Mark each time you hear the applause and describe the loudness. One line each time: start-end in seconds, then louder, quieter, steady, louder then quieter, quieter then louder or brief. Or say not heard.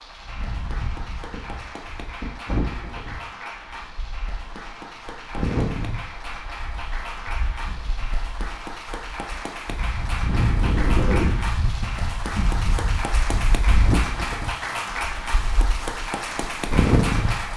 0.0-17.5 louder.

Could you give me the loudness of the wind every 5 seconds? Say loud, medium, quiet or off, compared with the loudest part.
medium, medium, loud, loud.